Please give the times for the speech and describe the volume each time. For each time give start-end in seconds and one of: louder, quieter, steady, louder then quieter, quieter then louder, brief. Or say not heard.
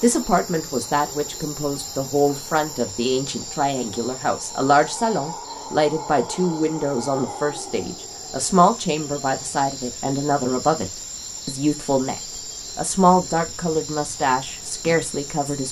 0.0-15.6 steady.